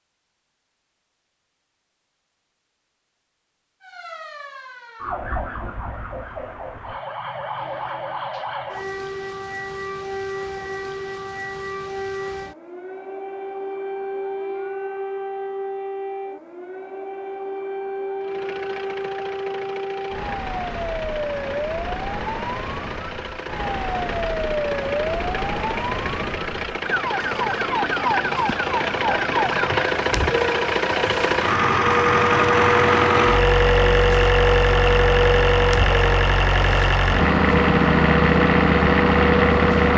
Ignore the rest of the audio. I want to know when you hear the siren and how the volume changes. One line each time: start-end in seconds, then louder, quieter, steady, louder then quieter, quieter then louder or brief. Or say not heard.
3.8-39.9 louder.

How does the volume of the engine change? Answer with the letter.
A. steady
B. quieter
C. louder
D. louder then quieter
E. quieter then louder
C.